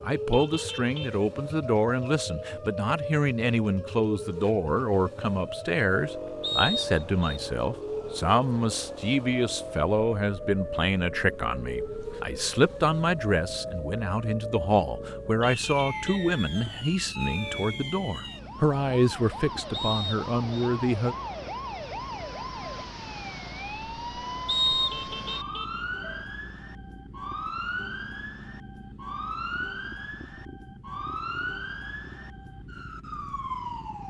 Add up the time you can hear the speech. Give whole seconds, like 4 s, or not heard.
21 s.